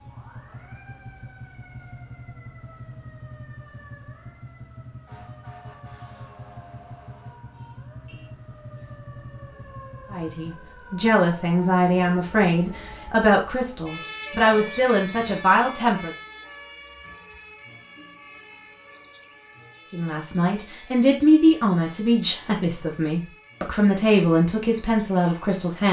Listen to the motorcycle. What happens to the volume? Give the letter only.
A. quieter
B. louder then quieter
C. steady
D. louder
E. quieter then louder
C.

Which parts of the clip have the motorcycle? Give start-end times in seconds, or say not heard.
0.0-10.6.